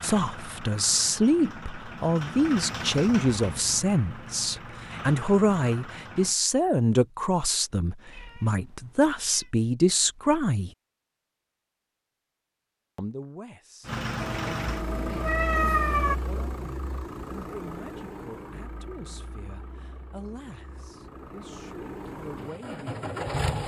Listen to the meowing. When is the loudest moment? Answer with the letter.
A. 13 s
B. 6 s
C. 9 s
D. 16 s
D.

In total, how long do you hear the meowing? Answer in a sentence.
You can hear the meowing for 3 seconds altogether.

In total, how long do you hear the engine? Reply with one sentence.
The engine can be heard for 16 seconds in total.